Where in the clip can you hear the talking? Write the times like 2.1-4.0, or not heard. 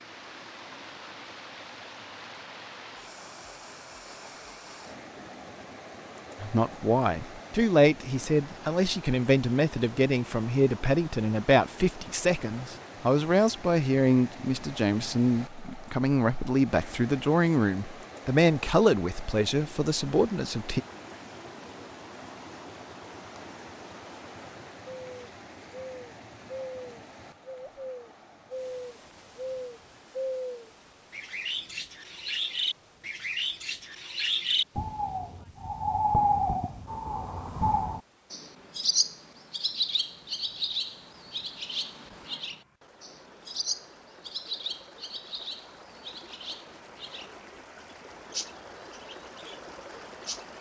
6.4-20.8.